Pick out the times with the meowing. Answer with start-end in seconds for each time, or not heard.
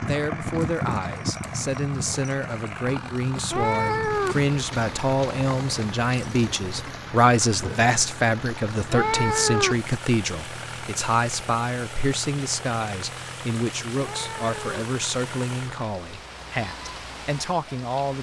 3.5-4.3, 8.9-9.8, 13.9-14.8.